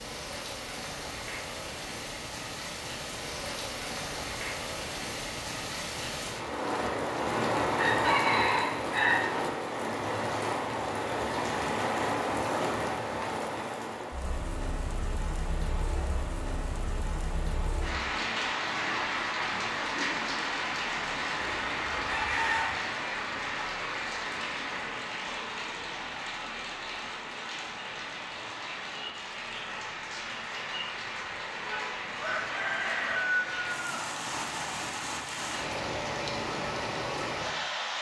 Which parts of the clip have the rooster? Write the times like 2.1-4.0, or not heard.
7.8-9.2, 21.4-22.8, 32.2-34.0.